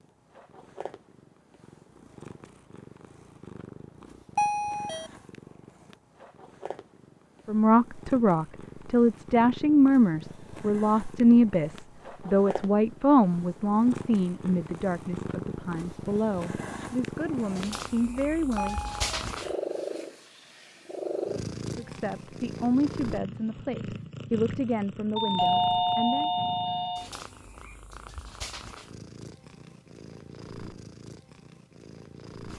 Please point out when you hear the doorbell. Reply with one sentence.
You can hear the doorbell from 4.3 to 5.1 s, from 18.6 to 19.1 s and from 25.1 to 27.1 s.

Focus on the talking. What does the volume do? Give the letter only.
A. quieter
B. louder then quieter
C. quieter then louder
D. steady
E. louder
A.